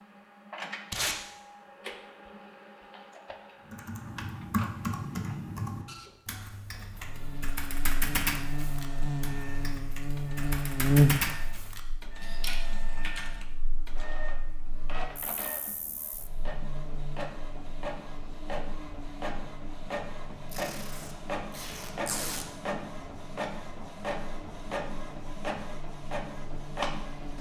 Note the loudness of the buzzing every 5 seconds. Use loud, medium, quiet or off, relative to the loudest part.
off, medium, loud, quiet, quiet, quiet.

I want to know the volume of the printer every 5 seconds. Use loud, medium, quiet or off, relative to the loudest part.
medium, quiet, medium, loud, loud, loud.